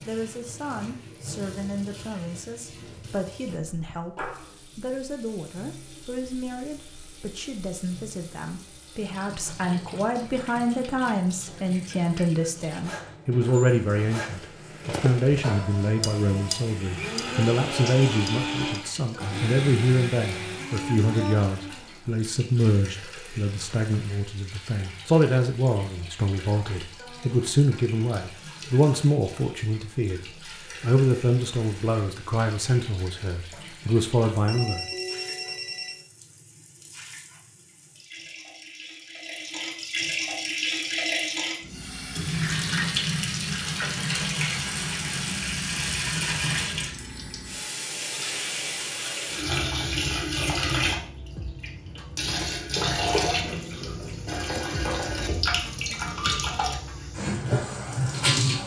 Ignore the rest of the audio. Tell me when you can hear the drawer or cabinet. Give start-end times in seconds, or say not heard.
not heard.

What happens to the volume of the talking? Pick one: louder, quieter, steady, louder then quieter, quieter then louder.
louder.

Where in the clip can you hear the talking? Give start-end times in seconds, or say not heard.
0.1-30.2, 30.8-34.8.